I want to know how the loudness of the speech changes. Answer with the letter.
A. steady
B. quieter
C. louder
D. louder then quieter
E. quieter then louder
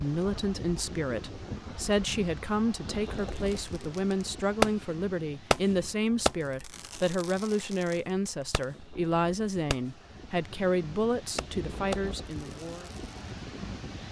A.